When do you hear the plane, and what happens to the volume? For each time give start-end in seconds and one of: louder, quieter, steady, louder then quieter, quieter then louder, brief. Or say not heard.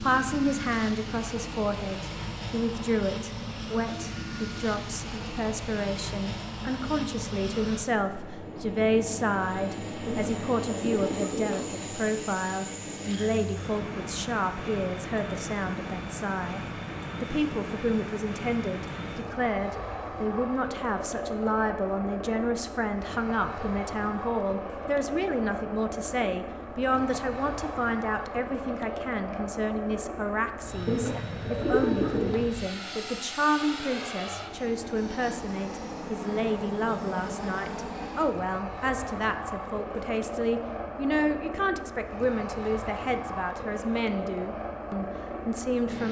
0.0-46.0 steady.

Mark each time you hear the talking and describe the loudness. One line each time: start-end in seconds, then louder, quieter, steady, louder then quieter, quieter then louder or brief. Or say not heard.
0.0-46.0 steady.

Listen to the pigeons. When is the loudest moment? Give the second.
32 s.